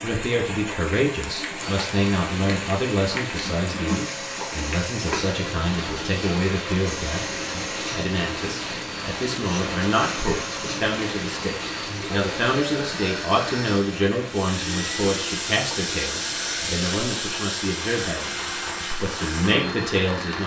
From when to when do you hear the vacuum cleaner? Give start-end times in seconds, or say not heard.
1.5-20.4.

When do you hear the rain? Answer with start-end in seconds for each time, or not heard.
0.0-20.4.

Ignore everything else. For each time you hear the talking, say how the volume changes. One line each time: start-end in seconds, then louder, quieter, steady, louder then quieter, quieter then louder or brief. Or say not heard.
0.0-20.4 steady.